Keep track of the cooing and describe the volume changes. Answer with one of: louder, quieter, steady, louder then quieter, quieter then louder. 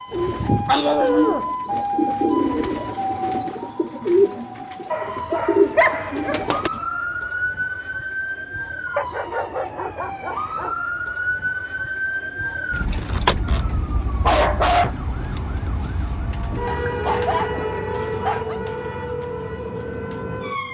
quieter then louder.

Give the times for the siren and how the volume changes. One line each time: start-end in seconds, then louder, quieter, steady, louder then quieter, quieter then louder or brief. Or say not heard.
0.0-20.7 steady.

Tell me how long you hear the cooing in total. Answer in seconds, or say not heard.
7 s.